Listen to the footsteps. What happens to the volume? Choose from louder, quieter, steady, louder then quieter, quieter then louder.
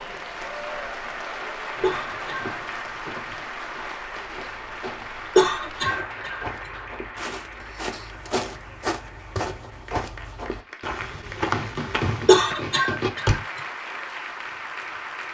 louder.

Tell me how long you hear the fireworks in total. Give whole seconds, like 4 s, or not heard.
2 s.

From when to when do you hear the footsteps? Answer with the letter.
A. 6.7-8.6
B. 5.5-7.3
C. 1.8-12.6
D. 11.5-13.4
C.